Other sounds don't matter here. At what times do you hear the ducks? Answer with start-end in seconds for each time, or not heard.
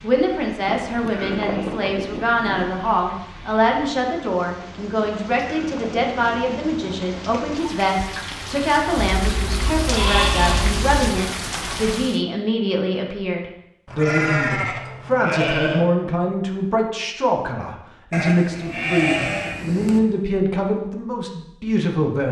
not heard.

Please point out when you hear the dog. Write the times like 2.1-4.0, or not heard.
not heard.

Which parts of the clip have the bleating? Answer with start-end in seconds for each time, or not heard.
0.7-2.7, 5.0-7.0, 8.9-11.2, 13.8-15.8, 18.1-20.0.